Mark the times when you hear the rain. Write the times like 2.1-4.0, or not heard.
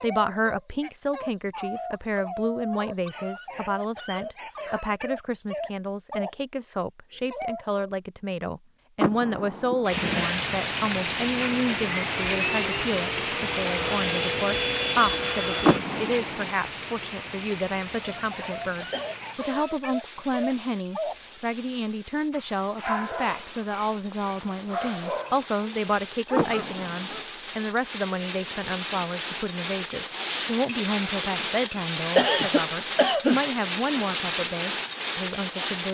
9.8-35.8.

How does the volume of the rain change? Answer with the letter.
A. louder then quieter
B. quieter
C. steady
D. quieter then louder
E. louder
D.